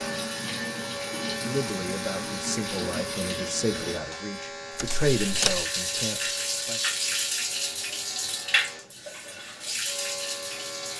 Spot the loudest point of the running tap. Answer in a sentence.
The volume of the running tap peaks at 7 seconds.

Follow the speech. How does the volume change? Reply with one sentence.
The volume of the speech goes up, then down.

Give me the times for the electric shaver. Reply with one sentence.
You can hear the electric shaver from 0.0 to 10.9 s.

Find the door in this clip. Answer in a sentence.
You can hear the door from 4.8 to 5.7 s.